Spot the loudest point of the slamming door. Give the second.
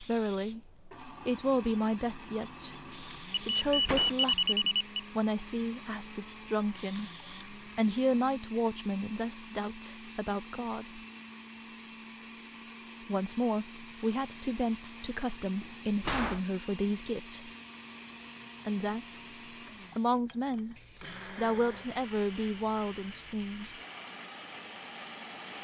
16 s.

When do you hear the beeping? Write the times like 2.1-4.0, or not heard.
3.3-4.8.